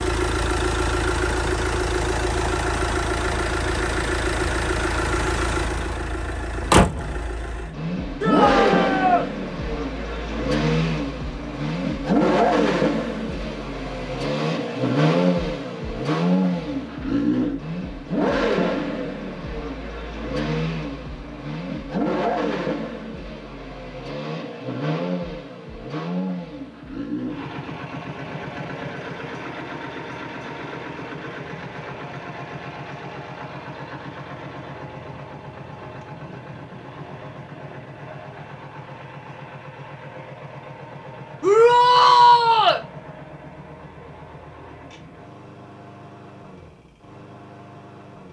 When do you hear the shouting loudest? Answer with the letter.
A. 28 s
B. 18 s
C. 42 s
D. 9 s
C.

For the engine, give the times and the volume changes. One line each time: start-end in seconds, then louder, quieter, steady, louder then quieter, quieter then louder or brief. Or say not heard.
0.0-48.2 quieter.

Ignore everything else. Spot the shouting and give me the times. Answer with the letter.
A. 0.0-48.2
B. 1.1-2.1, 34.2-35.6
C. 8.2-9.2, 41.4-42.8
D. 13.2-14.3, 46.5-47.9
C.